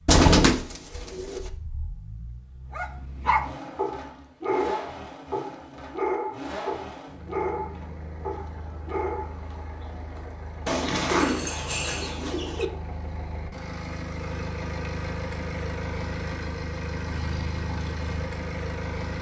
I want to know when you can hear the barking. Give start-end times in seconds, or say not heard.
2.7-10.0.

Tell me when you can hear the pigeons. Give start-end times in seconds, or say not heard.
0.1-1.4, 10.7-12.7.